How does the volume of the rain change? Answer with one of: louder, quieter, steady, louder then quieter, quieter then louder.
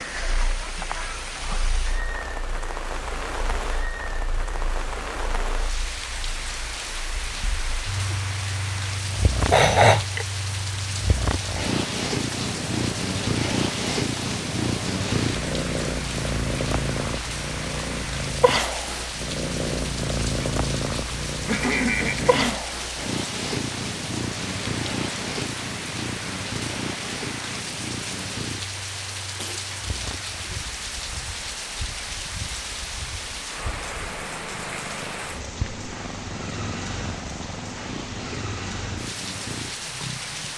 steady.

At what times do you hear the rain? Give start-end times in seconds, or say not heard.
0.0-40.5.